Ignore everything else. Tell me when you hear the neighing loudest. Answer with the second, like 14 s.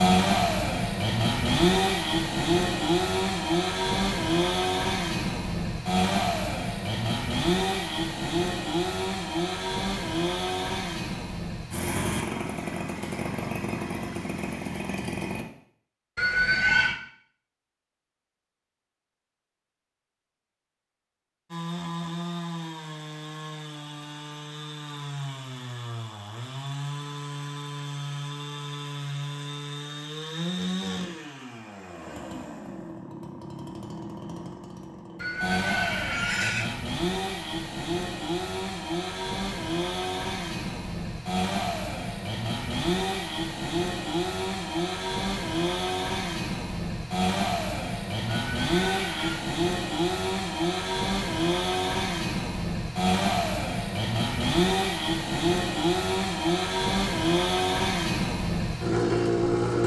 17 s.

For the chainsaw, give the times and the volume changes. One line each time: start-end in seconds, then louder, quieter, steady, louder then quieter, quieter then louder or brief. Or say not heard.
0.0-15.4 quieter
21.5-59.8 louder.